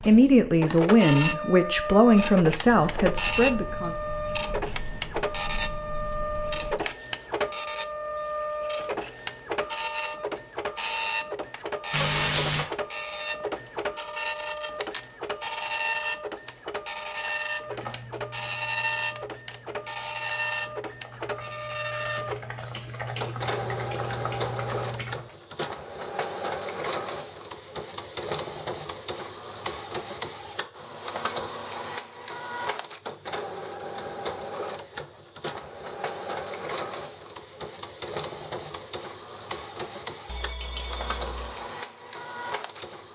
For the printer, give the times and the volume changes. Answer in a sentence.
You can hear the printer from 0.0 to 43.1 s, getting quieter.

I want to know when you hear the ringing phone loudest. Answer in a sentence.
The loudest moment of the ringing phone is at 12 seconds.